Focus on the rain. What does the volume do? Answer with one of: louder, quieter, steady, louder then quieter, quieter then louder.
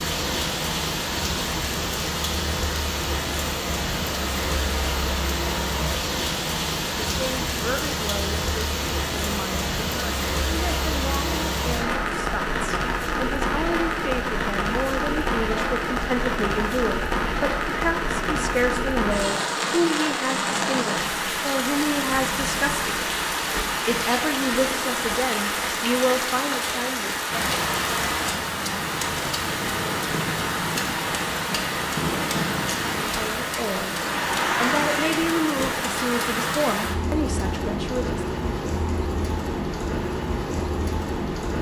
steady.